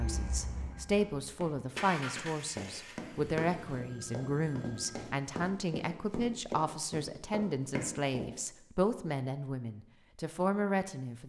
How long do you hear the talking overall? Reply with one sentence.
You can hear the talking for 11 seconds altogether.